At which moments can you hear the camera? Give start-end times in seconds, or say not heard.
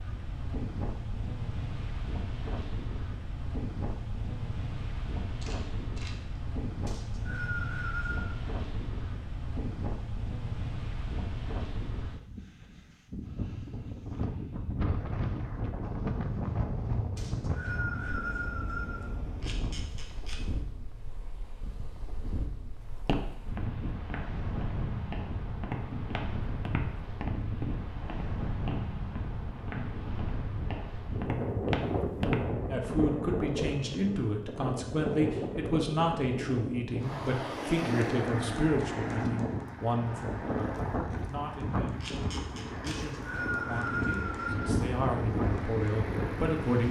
5.4-6.5, 19.4-20.4, 42.0-43.0.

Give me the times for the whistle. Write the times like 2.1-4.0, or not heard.
6.8-8.3, 17.1-19.1, 42.9-44.8.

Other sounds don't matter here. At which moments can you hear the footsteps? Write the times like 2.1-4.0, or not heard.
22.9-32.5.